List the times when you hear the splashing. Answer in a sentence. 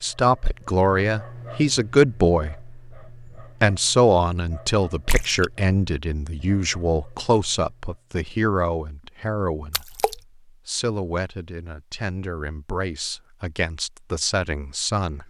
The splashing can be heard from 5.0 to 5.5 s and from 9.7 to 10.2 s.